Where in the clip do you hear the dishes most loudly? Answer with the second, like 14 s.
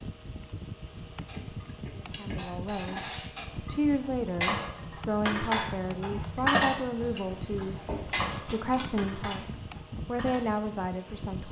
7 s.